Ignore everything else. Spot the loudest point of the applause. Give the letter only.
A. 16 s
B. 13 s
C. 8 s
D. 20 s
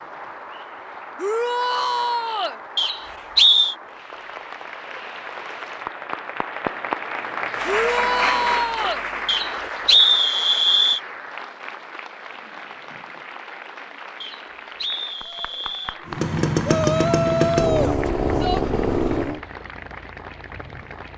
C.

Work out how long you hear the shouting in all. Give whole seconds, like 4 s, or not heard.
5 s.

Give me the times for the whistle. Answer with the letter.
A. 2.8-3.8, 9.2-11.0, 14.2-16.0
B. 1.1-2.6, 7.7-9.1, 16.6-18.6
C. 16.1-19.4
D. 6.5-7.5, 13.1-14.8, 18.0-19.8
A.